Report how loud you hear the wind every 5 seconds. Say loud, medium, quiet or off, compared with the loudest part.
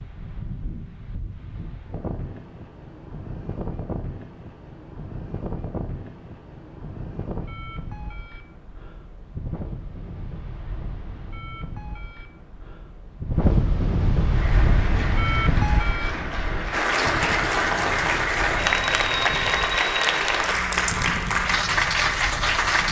medium, medium, loud, loud, medium.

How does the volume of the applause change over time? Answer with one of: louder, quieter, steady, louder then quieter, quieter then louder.
louder.